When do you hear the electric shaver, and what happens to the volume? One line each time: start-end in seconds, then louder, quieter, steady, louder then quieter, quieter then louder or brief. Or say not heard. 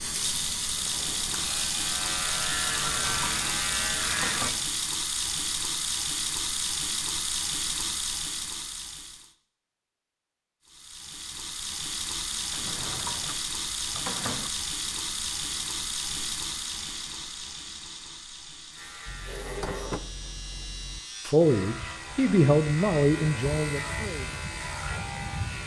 0.0-4.6 louder
18.7-25.6 louder.